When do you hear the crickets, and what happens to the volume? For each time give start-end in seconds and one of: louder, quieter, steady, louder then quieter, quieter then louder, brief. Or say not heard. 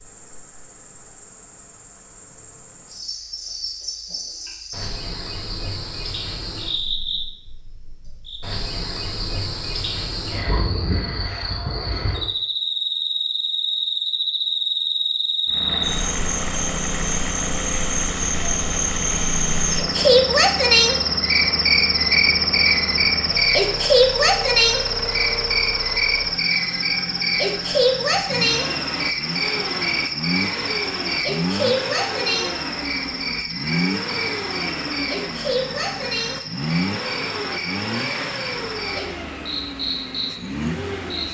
0.0-41.3 louder then quieter.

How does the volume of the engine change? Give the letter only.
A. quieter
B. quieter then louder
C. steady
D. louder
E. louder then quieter
C.